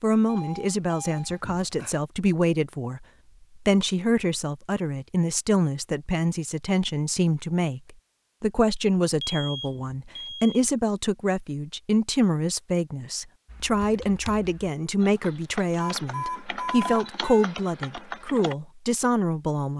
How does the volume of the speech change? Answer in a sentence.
The loudness of the speech stays about the same.